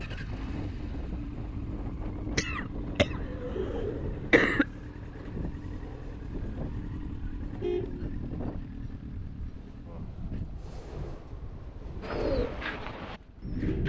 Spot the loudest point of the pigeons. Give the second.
12 s.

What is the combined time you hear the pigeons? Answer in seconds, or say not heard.
4 s.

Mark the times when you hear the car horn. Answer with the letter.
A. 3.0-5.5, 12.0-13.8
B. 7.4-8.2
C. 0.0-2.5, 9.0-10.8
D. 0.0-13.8
B.